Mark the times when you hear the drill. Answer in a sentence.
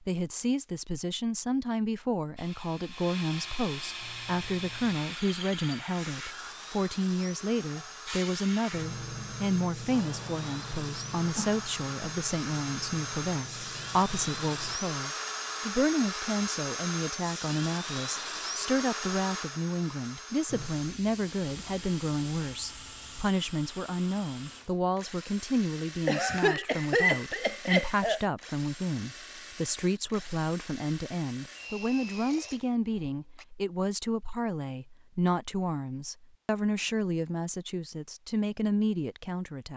You can hear the drill from 2.4 to 33.5 s.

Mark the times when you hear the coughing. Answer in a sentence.
The coughing can be heard from 26.1 to 28.2 s.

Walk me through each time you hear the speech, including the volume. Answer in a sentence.
You can hear the speech from 0.0 to 39.7 s, at a steady volume.